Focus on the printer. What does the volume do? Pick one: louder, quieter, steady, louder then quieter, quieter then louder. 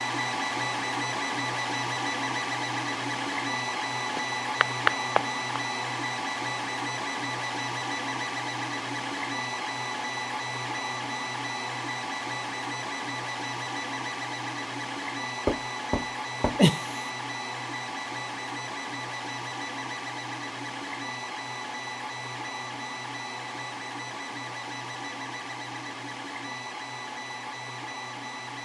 quieter.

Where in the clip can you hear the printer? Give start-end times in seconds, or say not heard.
0.0-28.6.